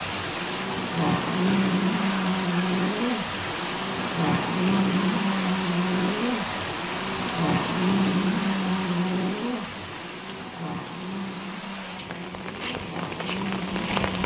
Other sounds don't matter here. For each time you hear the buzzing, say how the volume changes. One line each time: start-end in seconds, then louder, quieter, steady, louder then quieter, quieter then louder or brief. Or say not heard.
0.0-14.2 quieter.